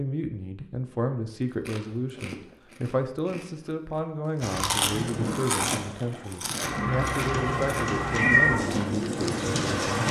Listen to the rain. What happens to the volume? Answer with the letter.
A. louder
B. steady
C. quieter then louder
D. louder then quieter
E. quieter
C.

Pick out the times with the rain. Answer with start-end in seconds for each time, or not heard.
4.4-10.0.